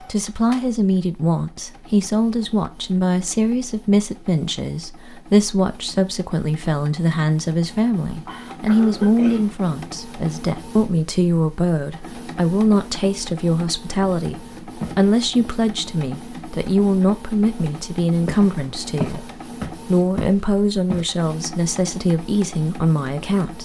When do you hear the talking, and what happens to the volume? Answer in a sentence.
The talking can be heard from 0.0 to 23.6 s, at a steady volume.